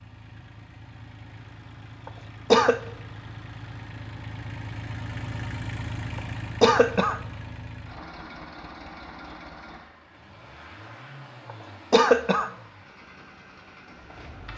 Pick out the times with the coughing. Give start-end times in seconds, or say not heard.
2.0-2.8, 6.2-7.2, 11.9-12.5.